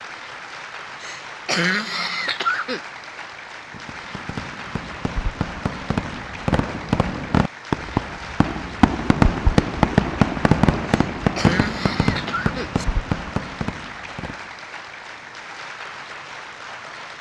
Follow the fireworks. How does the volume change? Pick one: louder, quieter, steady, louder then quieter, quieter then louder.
louder then quieter.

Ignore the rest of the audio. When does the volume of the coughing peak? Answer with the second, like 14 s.
2 s.